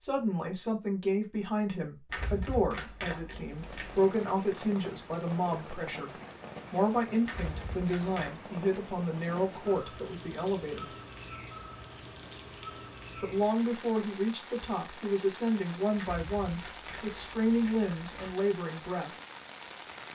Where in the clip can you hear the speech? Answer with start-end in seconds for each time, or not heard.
0.0-6.1, 6.7-10.9, 13.2-19.1.